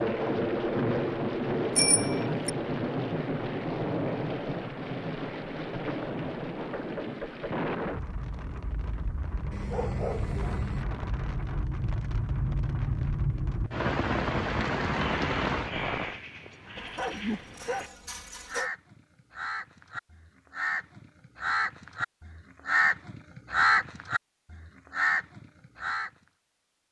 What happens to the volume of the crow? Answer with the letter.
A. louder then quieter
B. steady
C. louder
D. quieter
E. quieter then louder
C.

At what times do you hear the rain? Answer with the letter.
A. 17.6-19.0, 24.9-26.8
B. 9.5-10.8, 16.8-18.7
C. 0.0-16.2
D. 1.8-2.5
C.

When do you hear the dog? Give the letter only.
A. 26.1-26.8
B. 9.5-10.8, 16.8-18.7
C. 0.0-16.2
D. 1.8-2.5
B.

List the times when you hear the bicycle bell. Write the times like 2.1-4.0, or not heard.
1.8-2.5.